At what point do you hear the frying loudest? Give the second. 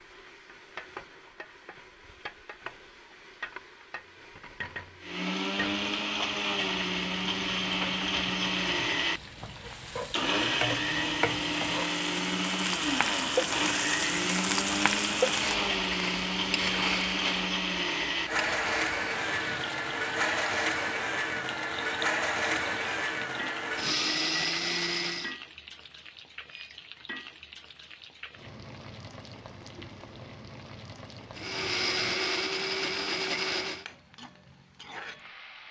15 s.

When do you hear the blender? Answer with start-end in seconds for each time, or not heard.
5.0-25.4, 31.4-33.9.